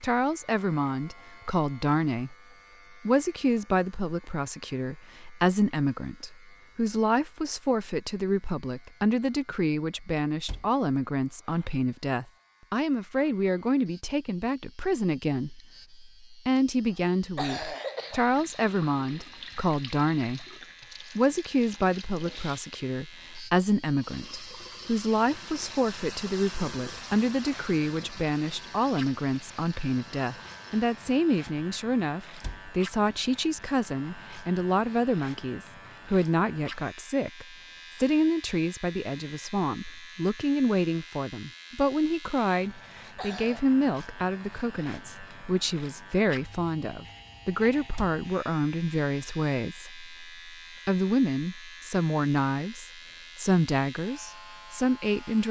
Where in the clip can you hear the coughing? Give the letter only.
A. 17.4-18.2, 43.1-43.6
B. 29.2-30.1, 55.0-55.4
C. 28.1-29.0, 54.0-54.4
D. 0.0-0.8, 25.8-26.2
A.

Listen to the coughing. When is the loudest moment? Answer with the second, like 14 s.
18 s.